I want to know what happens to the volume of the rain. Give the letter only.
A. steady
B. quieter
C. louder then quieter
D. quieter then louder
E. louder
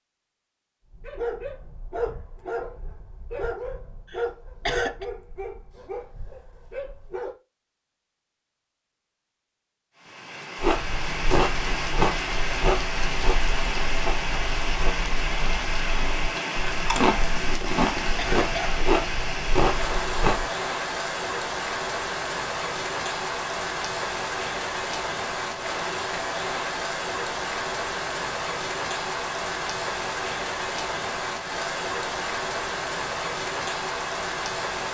A.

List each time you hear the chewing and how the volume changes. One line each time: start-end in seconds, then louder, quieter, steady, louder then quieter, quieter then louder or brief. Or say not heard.
10.6-20.5 quieter then louder.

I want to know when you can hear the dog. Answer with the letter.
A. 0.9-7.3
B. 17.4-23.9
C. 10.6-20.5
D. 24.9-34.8
A.